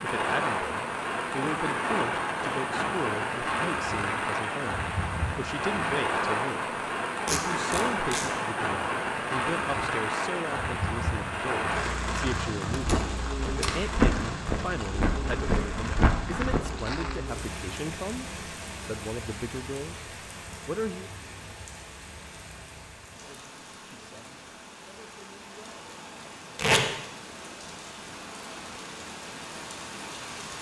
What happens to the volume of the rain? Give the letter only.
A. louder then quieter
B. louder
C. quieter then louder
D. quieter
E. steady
D.